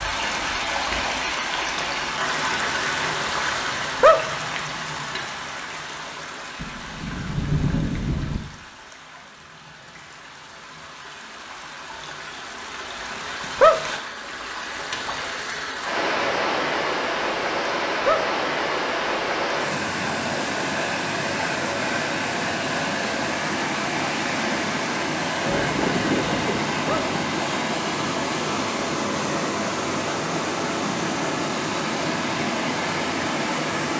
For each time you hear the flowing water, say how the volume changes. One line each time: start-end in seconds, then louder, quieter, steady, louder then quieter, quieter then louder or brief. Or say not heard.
0.0-33.9 quieter then louder.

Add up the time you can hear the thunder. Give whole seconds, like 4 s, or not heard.
4 s.